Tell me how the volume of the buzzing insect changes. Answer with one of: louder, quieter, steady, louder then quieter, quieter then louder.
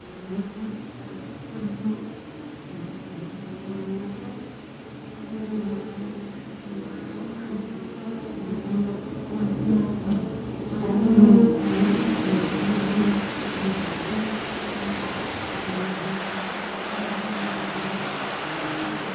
louder then quieter.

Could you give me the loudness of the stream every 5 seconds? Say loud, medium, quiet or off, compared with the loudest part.
quiet, quiet, loud, loud.